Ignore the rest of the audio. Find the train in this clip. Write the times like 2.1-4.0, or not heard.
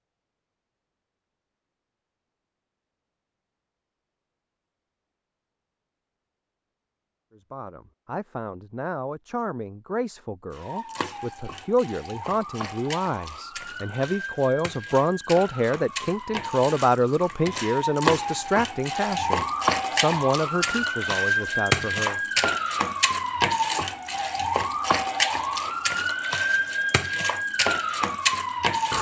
not heard.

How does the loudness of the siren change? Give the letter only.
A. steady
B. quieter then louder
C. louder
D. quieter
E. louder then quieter
C.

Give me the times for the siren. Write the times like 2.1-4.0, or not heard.
10.5-28.9.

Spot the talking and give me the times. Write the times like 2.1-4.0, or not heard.
7.3-22.2.